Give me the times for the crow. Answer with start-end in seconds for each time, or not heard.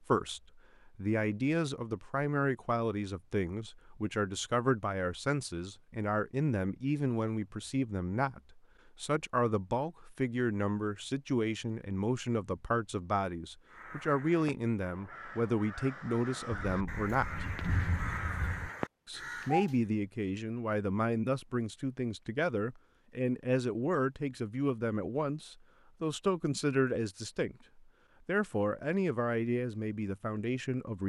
13.7-19.8.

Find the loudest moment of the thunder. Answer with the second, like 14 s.
18 s.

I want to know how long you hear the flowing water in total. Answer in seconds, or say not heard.
not heard.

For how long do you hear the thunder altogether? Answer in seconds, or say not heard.
2 s.